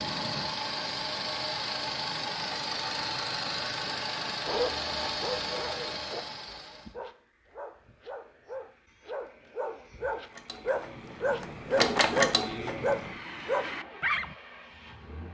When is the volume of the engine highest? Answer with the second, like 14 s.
12 s.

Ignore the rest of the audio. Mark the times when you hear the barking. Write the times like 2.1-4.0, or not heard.
4.5-14.3.